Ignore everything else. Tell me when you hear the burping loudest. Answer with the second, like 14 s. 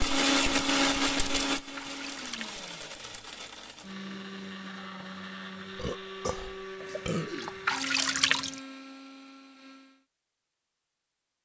7 s.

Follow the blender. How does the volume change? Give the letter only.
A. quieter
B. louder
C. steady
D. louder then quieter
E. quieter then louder
A.